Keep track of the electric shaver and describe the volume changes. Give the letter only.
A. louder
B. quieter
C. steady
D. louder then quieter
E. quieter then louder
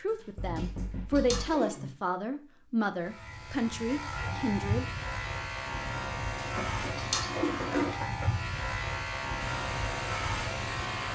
C.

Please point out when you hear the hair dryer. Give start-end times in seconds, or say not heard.
9.4-11.1.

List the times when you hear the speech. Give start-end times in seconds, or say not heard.
0.0-4.8.